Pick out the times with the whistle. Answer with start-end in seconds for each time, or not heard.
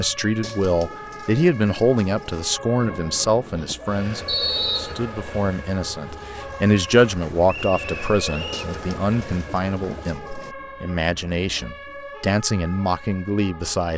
4.2-5.0, 7.5-8.7.